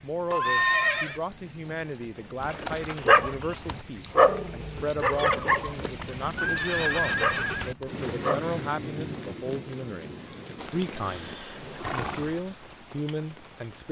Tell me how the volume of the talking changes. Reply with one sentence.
The volume of the talking stays about the same.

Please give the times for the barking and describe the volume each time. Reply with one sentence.
You can hear the barking from 2.4 to 8.4 s, getting quieter then louder.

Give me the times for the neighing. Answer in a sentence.
You can hear the neighing from 0.3 to 1.2 s, from 6.3 to 7.8 s and from 10.6 to 12.4 s.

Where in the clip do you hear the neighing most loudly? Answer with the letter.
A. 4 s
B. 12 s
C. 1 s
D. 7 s
C.